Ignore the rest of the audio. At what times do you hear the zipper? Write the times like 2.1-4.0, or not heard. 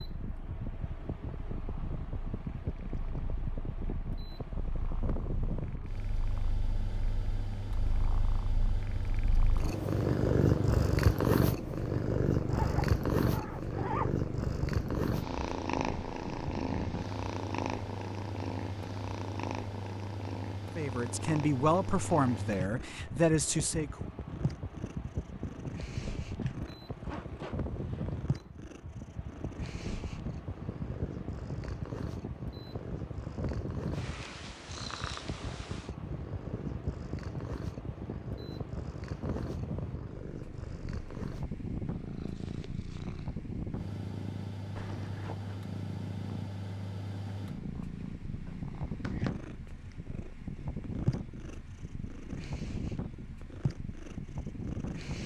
12.5-14.2, 27.0-28.2, 44.8-45.6.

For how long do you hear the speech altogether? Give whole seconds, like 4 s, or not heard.
3 s.